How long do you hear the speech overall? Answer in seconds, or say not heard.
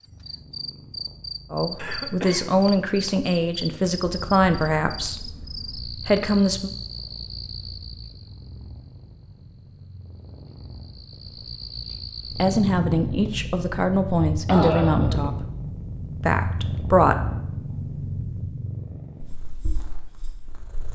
9 s.